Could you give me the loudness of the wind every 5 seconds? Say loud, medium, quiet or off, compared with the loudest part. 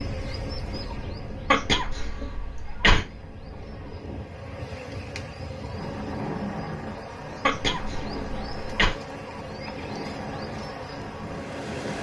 medium, loud, loud.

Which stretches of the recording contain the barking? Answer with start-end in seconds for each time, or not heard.
not heard.